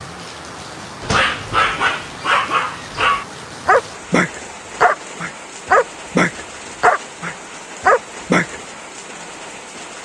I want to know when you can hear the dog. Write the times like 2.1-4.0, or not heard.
1.0-8.6.